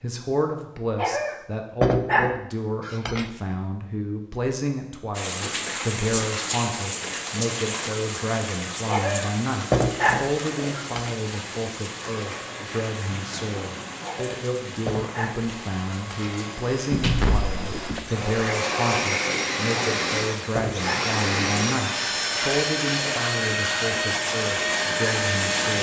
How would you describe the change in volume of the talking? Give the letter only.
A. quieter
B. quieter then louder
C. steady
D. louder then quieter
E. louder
C.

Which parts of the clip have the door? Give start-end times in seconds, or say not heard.
16.9-18.1.